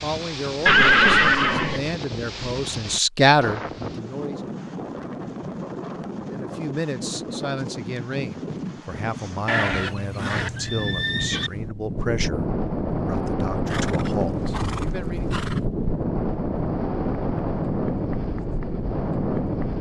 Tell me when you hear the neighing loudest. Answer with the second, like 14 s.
1 s.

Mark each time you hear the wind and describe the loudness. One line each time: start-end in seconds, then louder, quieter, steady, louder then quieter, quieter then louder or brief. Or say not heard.
0.0-19.7 louder.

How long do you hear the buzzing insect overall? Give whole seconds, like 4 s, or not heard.
not heard.